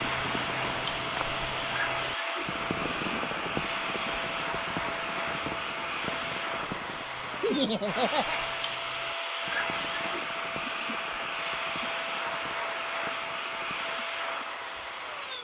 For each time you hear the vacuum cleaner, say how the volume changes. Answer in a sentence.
You can hear the vacuum cleaner from 0.0 to 15.3 s, at a steady volume.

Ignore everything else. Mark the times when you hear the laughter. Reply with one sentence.
The laughter can be heard from 7.4 to 8.4 s.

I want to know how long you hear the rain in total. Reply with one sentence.
You can hear the rain for 15 seconds altogether.